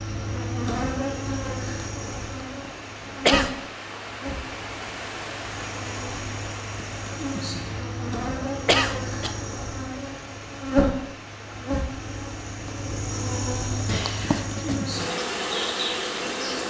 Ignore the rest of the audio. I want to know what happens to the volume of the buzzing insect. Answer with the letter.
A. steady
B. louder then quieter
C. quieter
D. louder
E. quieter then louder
E.